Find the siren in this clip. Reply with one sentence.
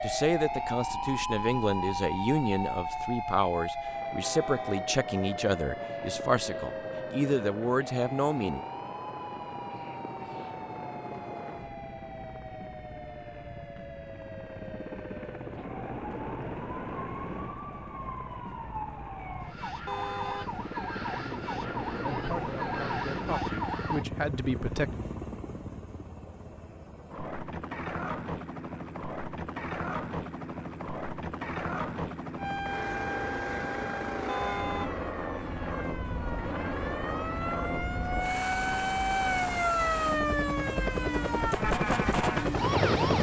You can hear the siren from 0.0 to 24.1 s and from 32.4 to 43.1 s.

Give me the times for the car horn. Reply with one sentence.
The car horn can be heard from 4.2 to 4.9 s, from 19.9 to 20.6 s and from 34.2 to 35.0 s.